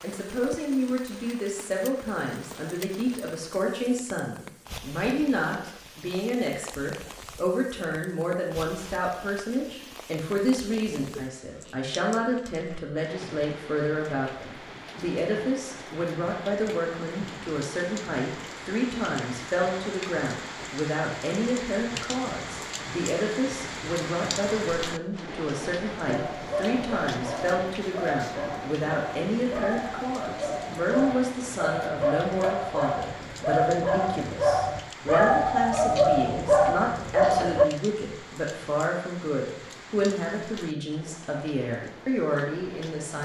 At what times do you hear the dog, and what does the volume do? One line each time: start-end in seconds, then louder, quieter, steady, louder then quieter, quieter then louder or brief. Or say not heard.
26.1-37.6 louder.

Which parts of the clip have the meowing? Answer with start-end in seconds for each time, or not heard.
not heard.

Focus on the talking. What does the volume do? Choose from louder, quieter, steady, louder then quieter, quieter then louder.
steady.